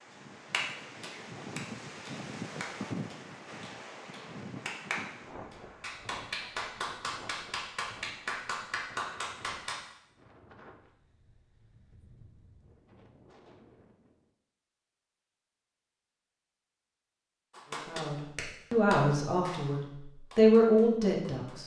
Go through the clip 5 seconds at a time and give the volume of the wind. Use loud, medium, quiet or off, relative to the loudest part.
loud, medium, quiet, off, off.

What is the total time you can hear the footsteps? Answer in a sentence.
You can't hear the footsteps here.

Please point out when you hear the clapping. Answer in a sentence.
You can hear the clapping from 0.5 to 9.8 s and from 17.5 to 21.6 s.